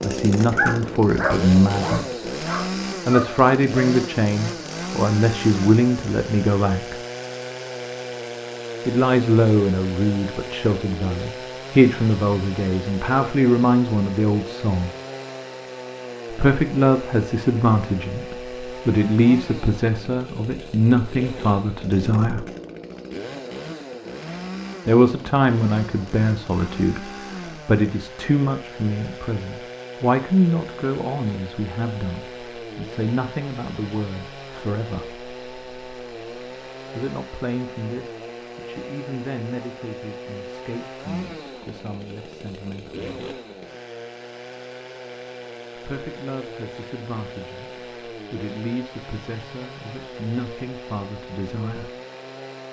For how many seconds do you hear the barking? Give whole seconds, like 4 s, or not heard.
4 s.